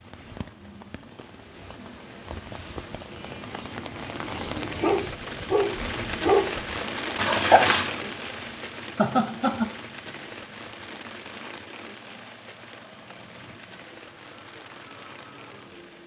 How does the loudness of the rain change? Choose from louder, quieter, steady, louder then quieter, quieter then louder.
louder then quieter.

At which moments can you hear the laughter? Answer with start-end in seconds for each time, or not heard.
8.9-9.7.